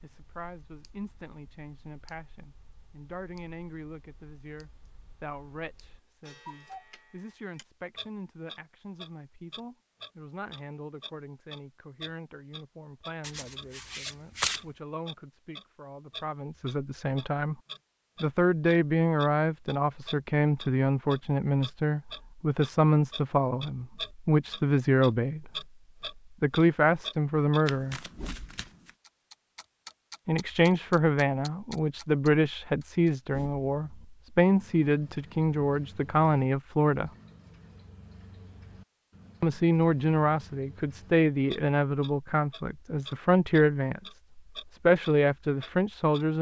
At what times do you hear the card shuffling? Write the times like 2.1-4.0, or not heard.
13.2-14.6, 27.6-28.9.